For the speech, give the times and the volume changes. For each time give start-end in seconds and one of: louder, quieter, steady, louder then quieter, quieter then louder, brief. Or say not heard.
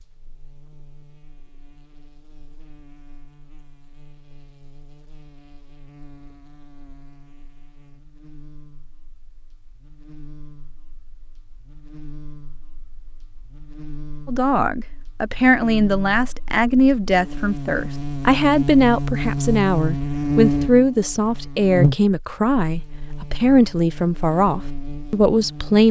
14.2-25.8 steady.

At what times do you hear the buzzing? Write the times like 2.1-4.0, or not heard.
0.0-25.8.